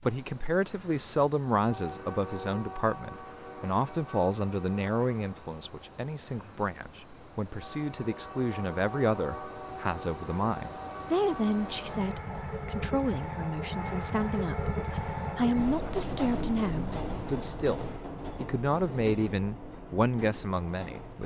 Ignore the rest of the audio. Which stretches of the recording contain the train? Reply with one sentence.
The train can be heard from 0.0 to 21.2 s.